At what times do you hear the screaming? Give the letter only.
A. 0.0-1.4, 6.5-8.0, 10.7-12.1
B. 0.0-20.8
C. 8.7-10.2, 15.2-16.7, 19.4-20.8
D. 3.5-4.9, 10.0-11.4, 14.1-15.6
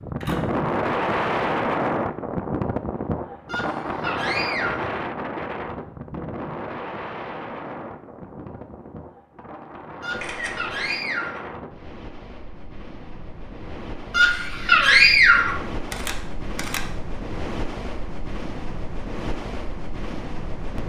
D.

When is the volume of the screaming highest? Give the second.
15 s.